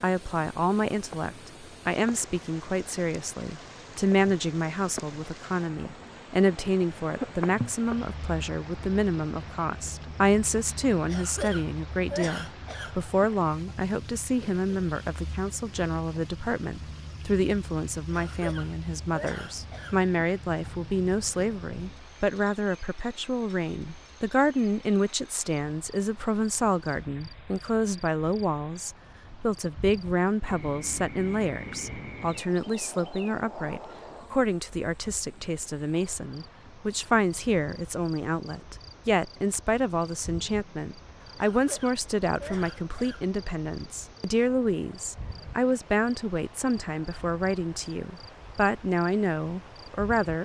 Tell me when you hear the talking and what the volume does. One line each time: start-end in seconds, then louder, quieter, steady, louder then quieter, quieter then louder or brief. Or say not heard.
0.0-50.3 steady.